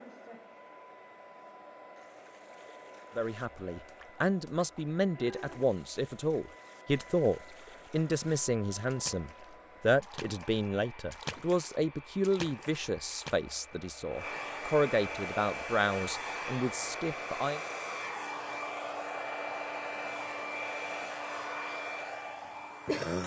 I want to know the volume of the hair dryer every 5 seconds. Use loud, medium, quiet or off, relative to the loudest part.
quiet, quiet, medium, loud, loud.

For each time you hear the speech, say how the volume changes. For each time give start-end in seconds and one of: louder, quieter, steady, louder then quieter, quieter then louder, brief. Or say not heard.
3.1-17.6 steady.